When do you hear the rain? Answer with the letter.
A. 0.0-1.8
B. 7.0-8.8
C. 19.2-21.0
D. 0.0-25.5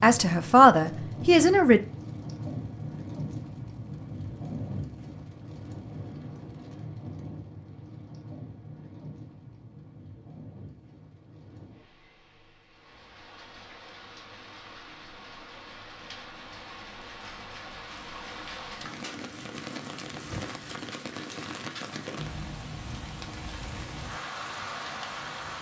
D.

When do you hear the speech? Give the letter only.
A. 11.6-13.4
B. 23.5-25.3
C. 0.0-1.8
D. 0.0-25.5
C.